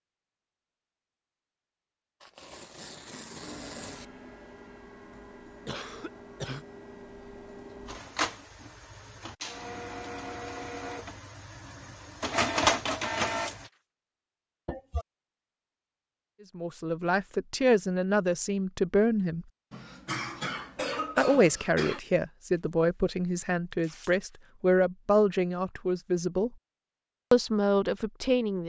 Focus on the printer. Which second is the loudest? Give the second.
13 s.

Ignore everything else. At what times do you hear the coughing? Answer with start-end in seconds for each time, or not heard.
5.7-6.7, 14.7-15.1, 19.7-22.0.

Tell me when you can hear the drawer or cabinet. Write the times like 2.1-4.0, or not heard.
not heard.